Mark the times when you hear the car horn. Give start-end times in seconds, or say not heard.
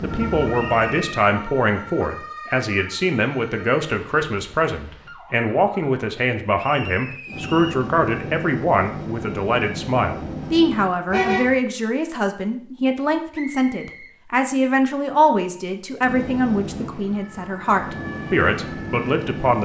11.1-11.6.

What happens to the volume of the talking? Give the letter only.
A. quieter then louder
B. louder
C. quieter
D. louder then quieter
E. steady
E.